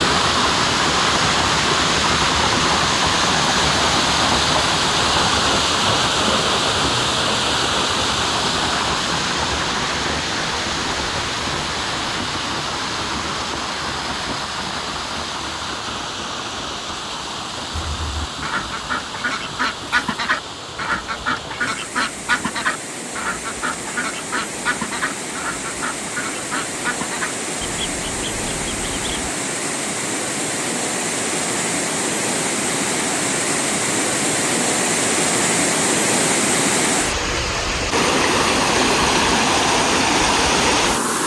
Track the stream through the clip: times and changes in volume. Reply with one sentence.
You can hear the stream from 0.0 to 41.2 s, getting quieter then louder.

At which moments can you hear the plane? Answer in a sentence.
The plane can't be heard in this clip.